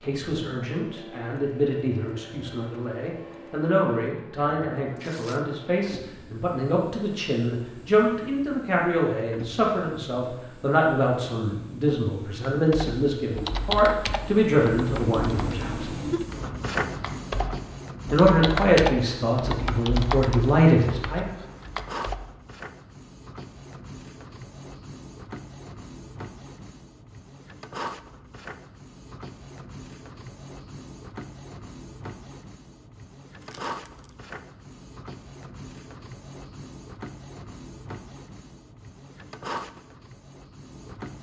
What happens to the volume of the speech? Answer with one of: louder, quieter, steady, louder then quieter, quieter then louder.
louder.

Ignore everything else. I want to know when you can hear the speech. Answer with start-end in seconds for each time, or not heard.
0.0-15.9, 18.1-21.2.